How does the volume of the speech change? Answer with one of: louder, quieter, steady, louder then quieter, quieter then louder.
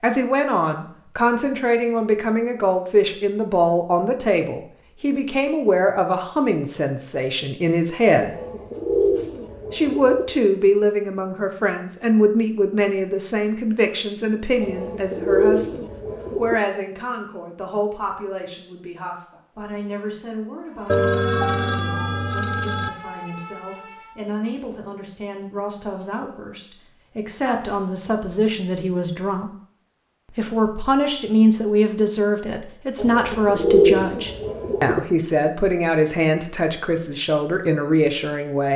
quieter then louder.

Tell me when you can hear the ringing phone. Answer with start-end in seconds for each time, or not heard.
20.9-22.9.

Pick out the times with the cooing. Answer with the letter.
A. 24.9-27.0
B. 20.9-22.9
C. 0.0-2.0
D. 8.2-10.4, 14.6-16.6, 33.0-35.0
D.